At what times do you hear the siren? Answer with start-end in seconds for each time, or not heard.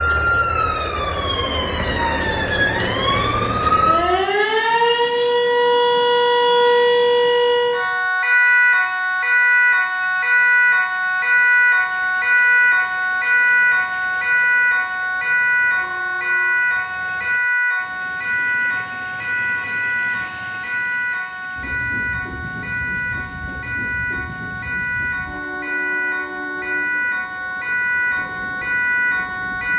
0.0-29.7.